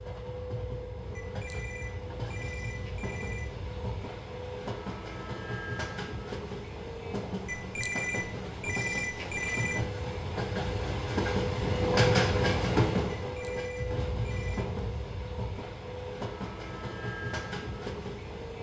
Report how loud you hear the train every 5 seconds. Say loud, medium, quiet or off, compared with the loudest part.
medium, medium, loud, medium.